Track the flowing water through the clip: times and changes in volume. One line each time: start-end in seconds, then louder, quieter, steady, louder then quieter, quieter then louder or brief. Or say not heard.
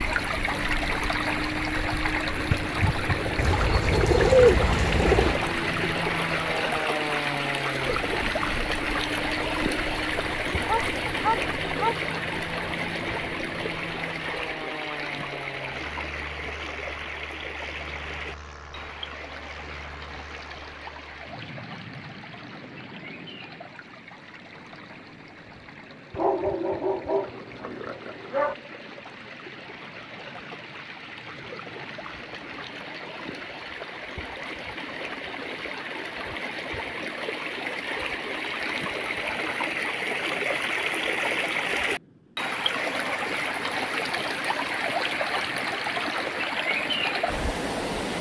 0.0-48.1 quieter then louder.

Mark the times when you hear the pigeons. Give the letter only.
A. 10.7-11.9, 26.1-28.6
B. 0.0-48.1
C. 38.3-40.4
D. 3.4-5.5
D.